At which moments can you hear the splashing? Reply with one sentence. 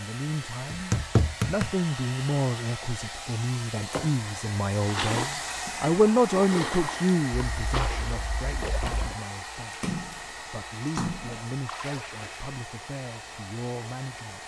The splashing can be heard from 4.8 to 12.5 s.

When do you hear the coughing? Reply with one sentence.
The coughing can't be heard in this clip.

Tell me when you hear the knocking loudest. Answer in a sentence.
The loudest moment of the knocking is at 1 second.